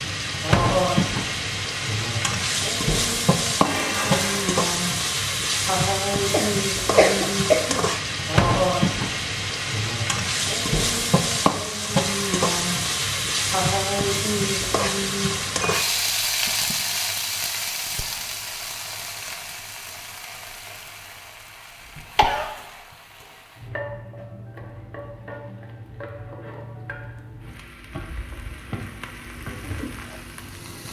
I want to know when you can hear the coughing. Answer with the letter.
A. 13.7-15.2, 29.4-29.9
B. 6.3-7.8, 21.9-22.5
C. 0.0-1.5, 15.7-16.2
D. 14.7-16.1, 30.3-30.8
B.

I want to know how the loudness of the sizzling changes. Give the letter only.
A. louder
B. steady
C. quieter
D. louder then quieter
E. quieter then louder
C.